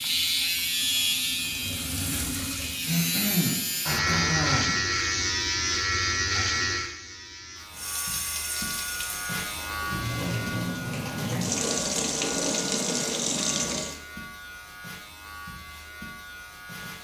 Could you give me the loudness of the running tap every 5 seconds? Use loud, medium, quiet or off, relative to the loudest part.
medium, medium, loud, off.